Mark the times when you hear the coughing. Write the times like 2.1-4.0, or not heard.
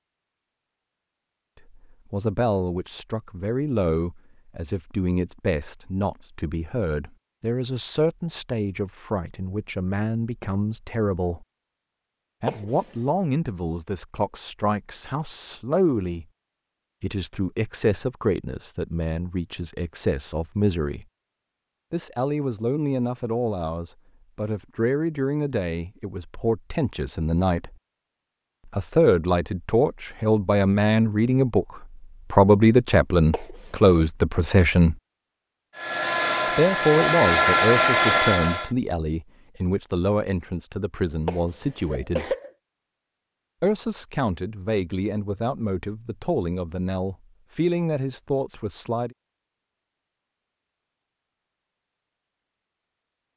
12.4-12.9, 33.3-34.0, 41.2-42.5.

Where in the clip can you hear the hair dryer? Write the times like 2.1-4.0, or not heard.
35.8-38.7.